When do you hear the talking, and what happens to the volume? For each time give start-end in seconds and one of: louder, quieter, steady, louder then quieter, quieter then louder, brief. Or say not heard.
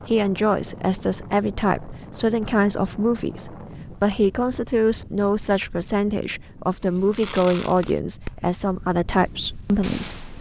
0.1-10.2 steady.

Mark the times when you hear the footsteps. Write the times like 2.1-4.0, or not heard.
not heard.